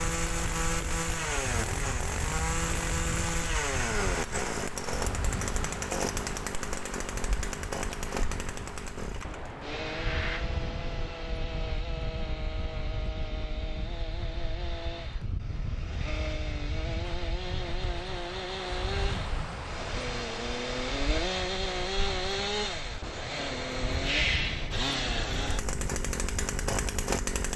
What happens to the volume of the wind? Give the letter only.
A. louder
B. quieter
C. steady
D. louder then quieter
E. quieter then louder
C.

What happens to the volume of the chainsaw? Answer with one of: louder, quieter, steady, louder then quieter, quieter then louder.
quieter then louder.